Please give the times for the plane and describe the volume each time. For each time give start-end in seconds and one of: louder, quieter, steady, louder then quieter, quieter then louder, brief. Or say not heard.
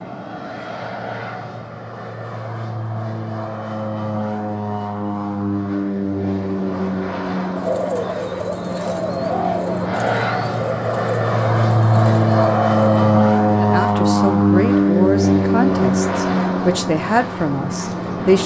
0.0-18.4 louder.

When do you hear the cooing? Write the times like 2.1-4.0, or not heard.
7.5-13.0.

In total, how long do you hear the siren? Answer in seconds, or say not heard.
not heard.